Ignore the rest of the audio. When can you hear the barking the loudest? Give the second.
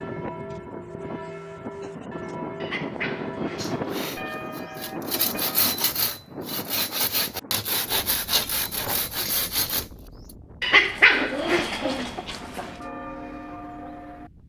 11 s.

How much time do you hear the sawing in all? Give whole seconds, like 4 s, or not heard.
6 s.